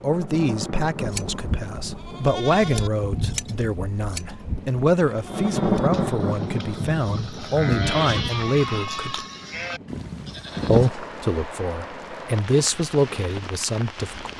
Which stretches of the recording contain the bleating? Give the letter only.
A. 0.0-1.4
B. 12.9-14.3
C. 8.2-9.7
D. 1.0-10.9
D.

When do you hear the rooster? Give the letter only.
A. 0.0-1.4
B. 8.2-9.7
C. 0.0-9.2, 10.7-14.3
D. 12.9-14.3
B.